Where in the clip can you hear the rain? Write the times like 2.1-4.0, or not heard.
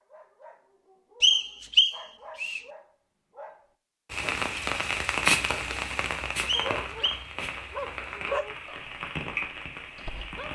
4.1-10.5.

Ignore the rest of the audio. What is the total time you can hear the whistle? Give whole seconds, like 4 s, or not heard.
2 s.